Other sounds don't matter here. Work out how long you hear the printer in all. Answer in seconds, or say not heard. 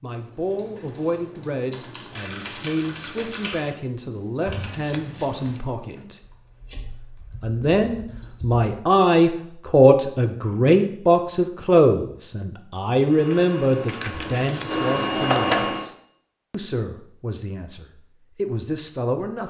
3 s.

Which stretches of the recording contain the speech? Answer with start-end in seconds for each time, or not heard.
0.0-6.2, 7.4-15.9, 16.5-19.4.